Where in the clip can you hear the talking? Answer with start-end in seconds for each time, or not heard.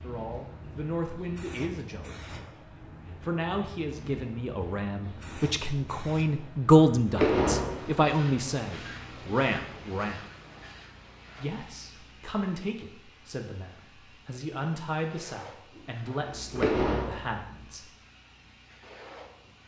0.0-2.5, 3.2-10.3, 11.4-17.9.